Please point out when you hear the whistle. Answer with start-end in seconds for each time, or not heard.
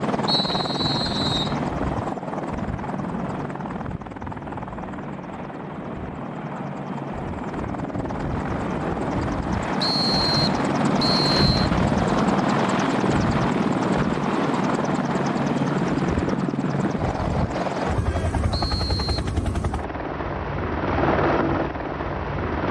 0.2-1.6, 9.8-11.7, 18.5-19.3.